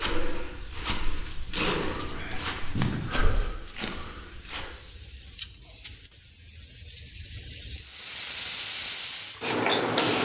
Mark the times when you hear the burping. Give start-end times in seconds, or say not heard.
1.6-3.2.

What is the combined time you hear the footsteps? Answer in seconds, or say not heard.
5 s.